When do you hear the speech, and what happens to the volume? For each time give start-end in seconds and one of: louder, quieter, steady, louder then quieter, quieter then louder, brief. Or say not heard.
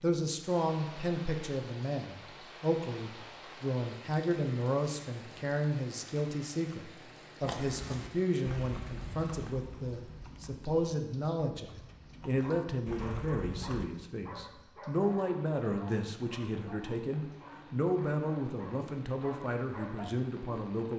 0.0-20.9 steady.